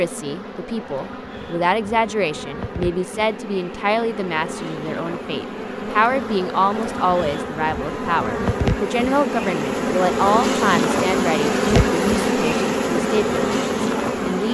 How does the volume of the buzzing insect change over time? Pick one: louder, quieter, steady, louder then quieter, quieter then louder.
louder.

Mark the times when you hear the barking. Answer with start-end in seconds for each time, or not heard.
not heard.